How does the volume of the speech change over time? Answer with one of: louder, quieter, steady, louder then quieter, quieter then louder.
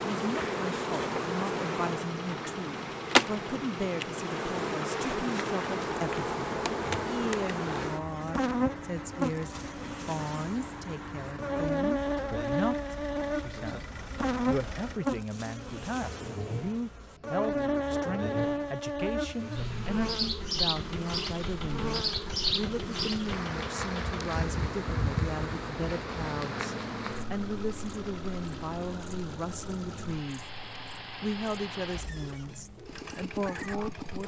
steady.